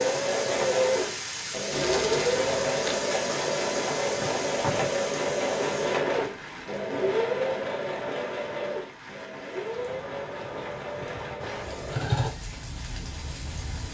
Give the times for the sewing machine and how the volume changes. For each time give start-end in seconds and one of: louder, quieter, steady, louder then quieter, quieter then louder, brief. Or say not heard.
0.0-12.3 quieter.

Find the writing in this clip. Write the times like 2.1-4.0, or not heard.
not heard.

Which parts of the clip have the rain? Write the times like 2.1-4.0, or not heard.
0.0-13.9.